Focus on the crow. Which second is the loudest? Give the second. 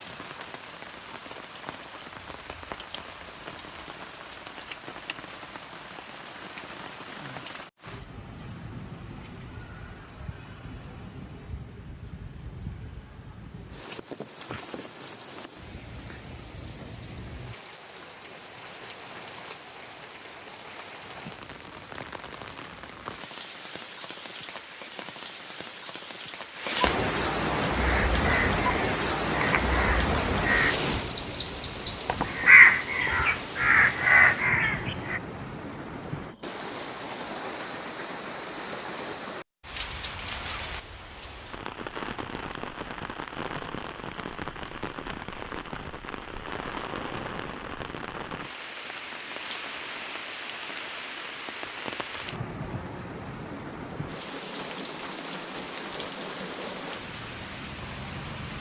33 s.